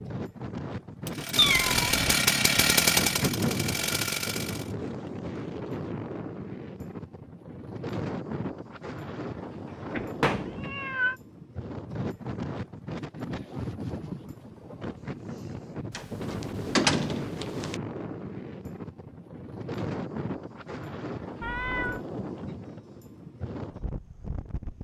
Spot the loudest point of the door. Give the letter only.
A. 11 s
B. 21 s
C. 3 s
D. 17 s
D.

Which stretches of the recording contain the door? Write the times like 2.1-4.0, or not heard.
10.0-10.7, 15.9-17.8.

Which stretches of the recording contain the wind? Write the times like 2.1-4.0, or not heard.
0.0-24.8.